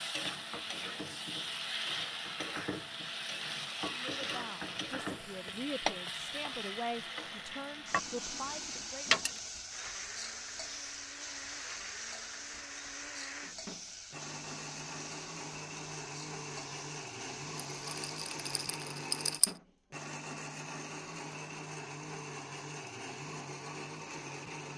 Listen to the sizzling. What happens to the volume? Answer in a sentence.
The loudness of the sizzling goes down.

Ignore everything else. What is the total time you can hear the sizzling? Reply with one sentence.
You can hear the sizzling for 19 seconds altogether.